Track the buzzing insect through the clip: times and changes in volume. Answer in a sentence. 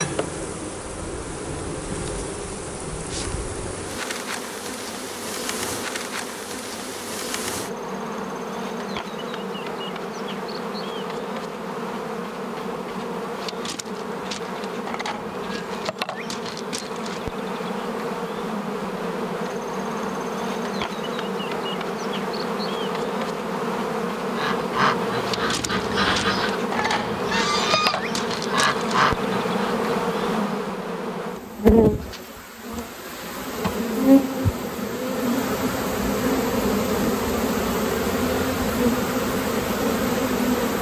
You can hear the buzzing insect from 0.0 to 40.7 s, getting louder.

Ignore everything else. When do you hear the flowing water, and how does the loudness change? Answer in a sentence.
You can't hear the flowing water here.